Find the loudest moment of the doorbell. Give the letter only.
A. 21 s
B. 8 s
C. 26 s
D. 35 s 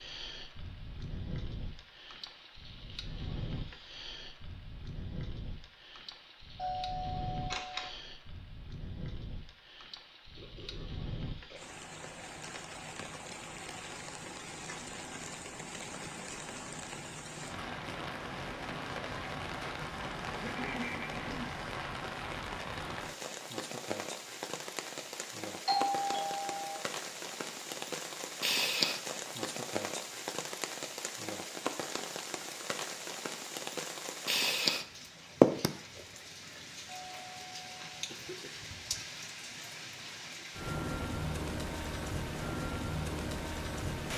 C.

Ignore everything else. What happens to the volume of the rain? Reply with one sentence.
The loudness of the rain goes up.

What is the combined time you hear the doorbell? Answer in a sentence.
You can hear the doorbell for 4 seconds altogether.